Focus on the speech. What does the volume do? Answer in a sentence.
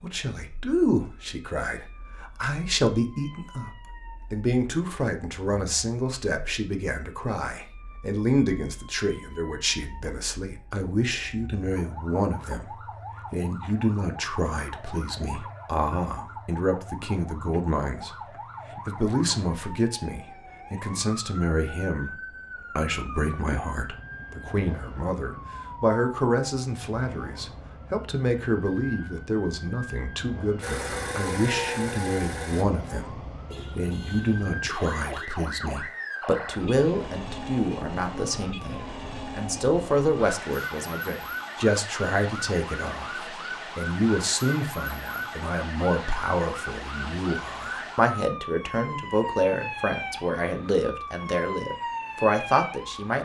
The loudness of the speech stays about the same.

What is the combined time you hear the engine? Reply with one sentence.
The engine can be heard for 2 seconds in total.